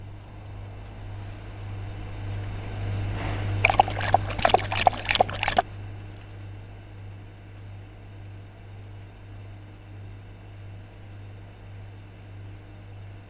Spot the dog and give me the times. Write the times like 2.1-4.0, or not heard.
3.6-5.7.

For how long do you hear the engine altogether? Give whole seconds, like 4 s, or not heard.
13 s.